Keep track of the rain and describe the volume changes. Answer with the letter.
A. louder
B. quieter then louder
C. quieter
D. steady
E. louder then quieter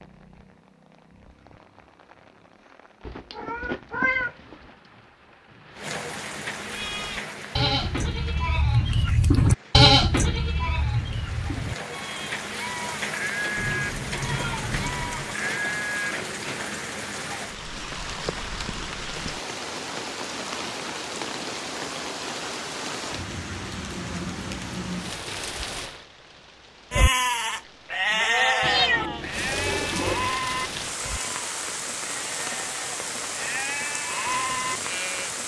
A.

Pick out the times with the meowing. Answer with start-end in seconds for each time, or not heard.
3.0-4.5, 13.6-15.3, 28.6-30.3.